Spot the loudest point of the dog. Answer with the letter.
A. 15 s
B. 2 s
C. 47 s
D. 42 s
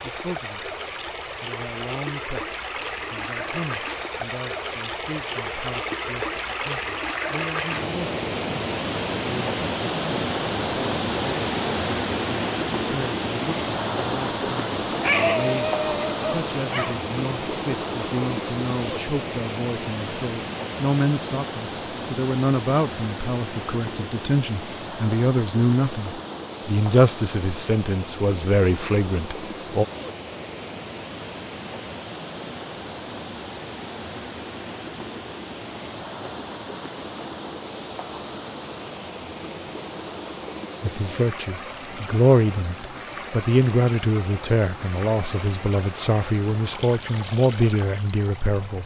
A.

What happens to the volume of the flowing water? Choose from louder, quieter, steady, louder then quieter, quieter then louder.
quieter.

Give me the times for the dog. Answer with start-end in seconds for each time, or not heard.
15.0-17.0.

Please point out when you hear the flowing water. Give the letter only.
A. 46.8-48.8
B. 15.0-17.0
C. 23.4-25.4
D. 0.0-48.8
D.